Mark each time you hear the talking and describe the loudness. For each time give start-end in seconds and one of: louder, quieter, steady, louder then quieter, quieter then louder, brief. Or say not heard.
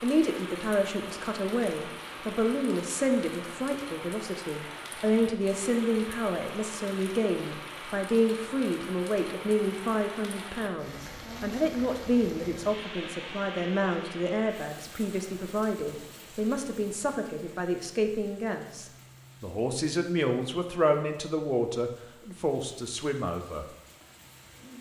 0.0-23.6 steady.